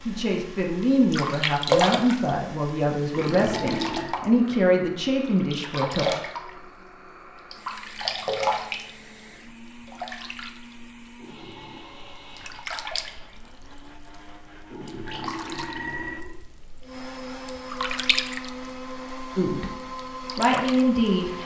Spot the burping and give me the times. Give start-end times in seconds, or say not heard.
3.1-4.2, 11.2-11.9, 14.7-16.4.